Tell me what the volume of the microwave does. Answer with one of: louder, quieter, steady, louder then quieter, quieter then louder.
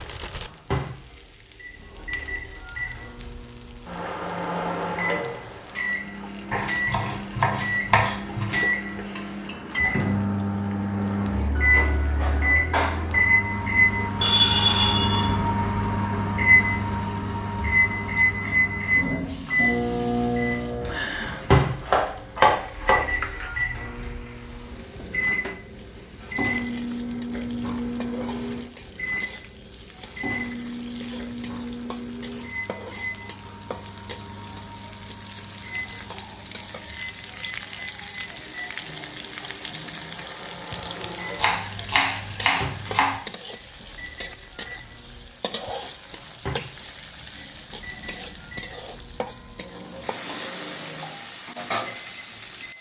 louder then quieter.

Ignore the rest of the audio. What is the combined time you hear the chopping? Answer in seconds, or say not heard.
6 s.